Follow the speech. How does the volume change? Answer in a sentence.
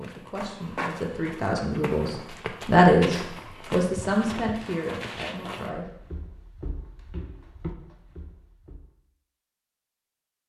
The loudness of the speech goes up, then down.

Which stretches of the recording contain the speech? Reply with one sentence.
You can hear the speech from 0.0 to 5.9 s.